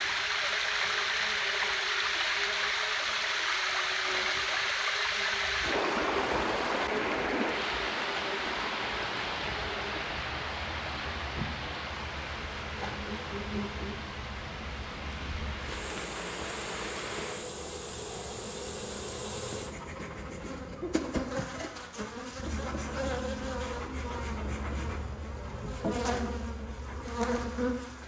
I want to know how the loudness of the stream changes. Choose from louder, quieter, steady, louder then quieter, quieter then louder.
quieter.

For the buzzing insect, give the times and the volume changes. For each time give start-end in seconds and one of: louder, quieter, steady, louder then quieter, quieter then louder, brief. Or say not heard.
0.0-28.0 louder.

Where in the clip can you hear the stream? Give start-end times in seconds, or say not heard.
0.0-17.5.